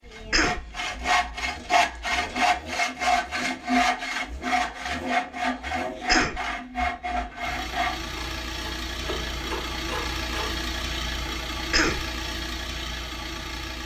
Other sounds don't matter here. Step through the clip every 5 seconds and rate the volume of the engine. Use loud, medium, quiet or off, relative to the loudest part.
quiet, loud, loud.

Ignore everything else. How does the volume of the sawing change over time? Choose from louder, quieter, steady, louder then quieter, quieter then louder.
quieter.